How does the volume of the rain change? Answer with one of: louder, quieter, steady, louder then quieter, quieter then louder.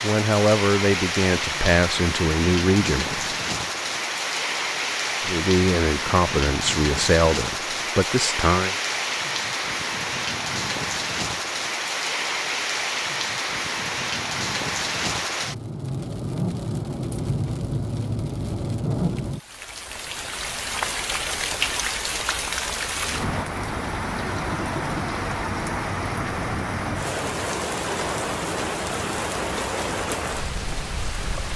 steady.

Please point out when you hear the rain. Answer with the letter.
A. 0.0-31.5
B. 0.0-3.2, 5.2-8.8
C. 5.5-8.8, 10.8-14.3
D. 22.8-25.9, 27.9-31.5
A.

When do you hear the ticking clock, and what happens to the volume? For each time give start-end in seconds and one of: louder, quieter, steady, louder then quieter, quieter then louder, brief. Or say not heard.
not heard.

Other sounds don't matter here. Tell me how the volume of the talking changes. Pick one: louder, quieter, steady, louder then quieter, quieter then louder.
steady.